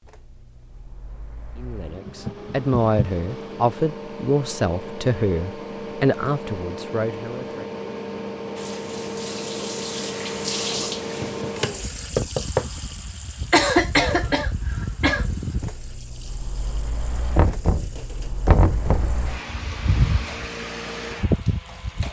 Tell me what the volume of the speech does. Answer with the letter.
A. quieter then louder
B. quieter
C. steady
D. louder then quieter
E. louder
B.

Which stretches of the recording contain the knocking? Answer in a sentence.
You can hear the knocking from 2.0 to 3.1 s, from 11.2 to 12.7 s and from 17.4 to 19.2 s.